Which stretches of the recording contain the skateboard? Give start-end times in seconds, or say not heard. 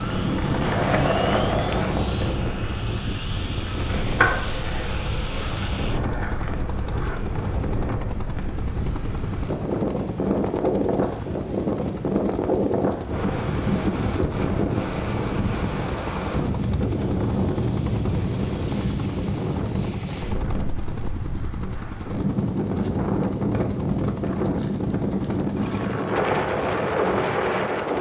0.0-7.2.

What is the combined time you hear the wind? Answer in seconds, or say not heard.
28 s.